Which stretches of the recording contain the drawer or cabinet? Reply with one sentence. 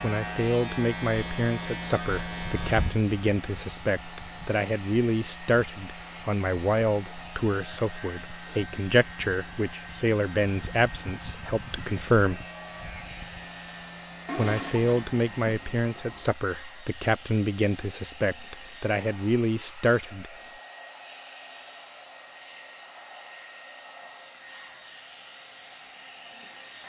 You can't hear the drawer or cabinet here.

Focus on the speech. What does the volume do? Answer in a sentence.
The volume of the speech stays about the same.